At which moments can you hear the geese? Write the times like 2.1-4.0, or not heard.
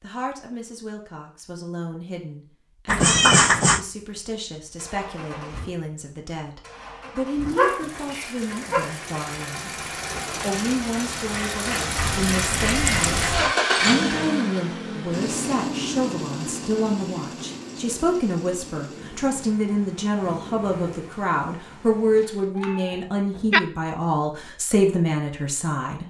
not heard.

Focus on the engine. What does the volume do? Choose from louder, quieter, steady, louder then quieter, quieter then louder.
louder then quieter.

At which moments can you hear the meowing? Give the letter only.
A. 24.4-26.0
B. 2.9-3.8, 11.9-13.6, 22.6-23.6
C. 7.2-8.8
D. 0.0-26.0
B.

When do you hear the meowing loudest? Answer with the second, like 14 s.
3 s.